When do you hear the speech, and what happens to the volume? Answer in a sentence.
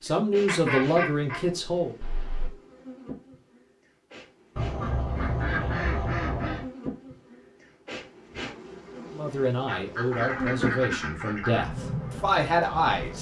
You can hear the speech briefly from 0.0 to 1.9 s; and from 9.1 to 13.1 s, getting louder.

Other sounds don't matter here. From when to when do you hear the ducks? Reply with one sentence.
The ducks can be heard from 0.5 to 1.4 s, from 2.0 to 2.5 s, from 4.5 to 6.7 s and from 9.7 to 11.7 s.